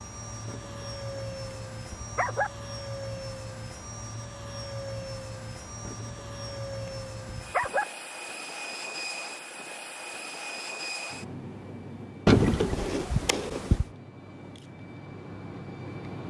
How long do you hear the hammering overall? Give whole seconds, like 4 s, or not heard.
not heard.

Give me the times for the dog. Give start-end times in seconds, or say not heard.
0.5-2.5, 5.8-7.8, 12.2-13.8.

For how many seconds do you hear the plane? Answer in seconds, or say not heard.
16 s.